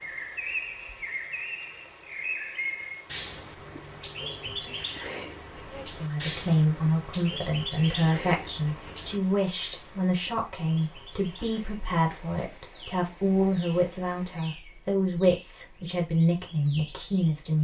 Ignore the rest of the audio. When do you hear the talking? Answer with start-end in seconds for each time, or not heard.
5.7-17.5.